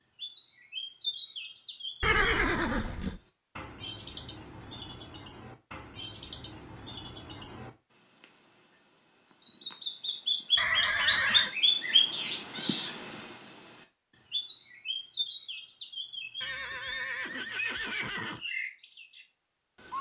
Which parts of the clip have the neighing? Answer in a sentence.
The neighing can be heard from 2.0 to 3.1 s, from 10.6 to 11.5 s and from 16.4 to 18.4 s.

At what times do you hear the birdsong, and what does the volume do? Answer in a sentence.
The birdsong can be heard from 0.0 to 19.9 s, getting louder then quieter.